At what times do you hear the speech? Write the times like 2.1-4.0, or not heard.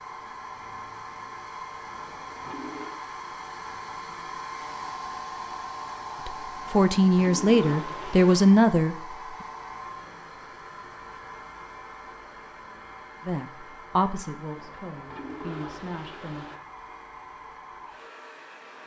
6.2-8.9, 13.2-16.4.